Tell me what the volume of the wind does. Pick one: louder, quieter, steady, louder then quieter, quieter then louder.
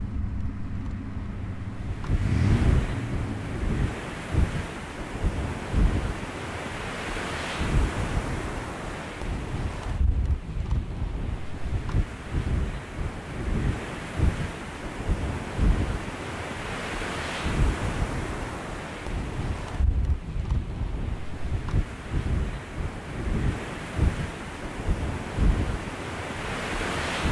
steady.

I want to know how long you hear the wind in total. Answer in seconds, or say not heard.
27 s.